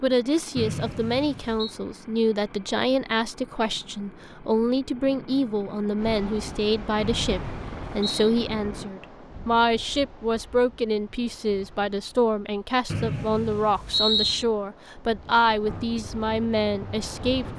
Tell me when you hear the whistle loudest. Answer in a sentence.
The loudest moment of the whistle is at 14 seconds.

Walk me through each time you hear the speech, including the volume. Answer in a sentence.
The speech can be heard from 0.0 to 17.4 s, at a steady volume.